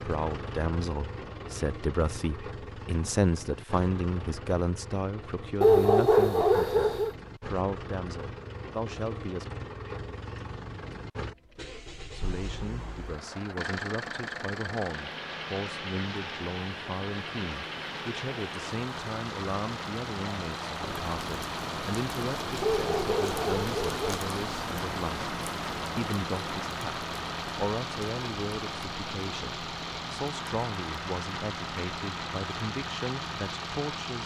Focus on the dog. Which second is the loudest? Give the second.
6 s.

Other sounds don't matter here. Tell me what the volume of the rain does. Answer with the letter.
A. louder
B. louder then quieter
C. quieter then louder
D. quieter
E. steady
B.